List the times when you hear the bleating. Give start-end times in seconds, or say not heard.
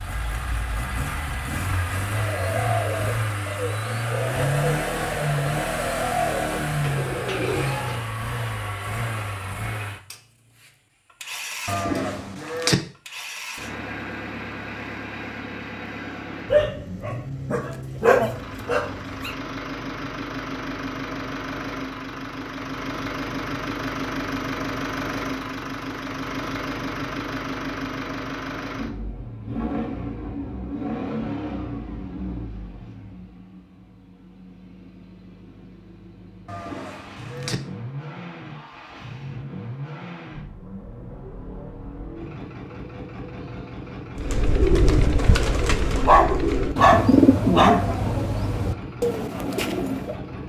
11.7-12.8, 36.5-37.5.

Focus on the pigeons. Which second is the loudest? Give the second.
47 s.